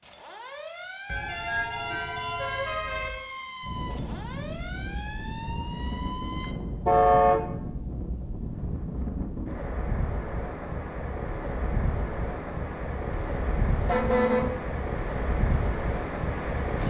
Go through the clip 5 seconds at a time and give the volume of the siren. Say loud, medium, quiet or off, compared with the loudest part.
loud, loud, off, off.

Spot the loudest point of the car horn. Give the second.
7 s.